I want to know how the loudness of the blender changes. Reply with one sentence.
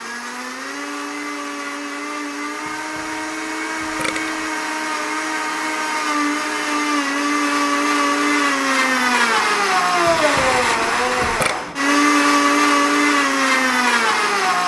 The volume of the blender goes up.